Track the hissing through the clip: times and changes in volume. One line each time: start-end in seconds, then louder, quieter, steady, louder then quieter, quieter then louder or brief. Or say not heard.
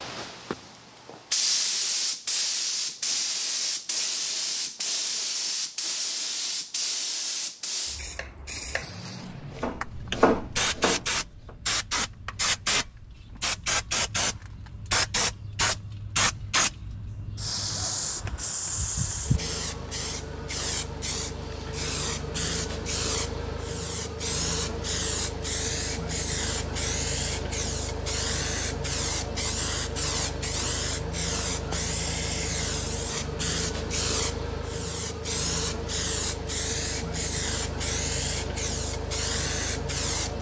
0.0-40.3 steady.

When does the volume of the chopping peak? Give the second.
10 s.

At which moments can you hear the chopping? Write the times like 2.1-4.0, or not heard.
8.2-11.6.